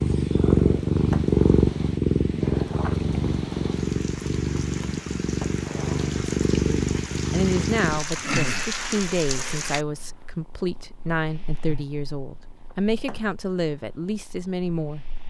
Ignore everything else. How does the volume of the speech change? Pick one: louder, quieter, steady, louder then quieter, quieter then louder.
steady.